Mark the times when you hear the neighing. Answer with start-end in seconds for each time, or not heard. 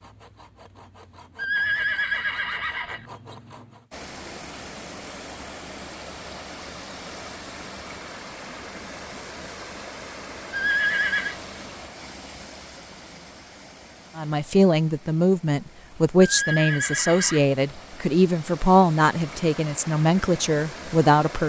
1.4-3.0, 10.5-11.3, 16.2-17.4.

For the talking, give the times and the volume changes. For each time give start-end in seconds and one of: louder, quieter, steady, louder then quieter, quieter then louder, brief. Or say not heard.
14.2-21.4 steady.